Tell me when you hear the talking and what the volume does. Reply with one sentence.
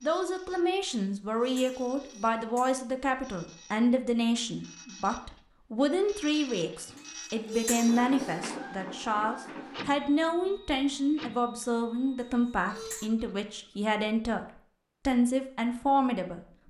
You can hear the talking from 0.0 to 16.4 s, at a steady volume.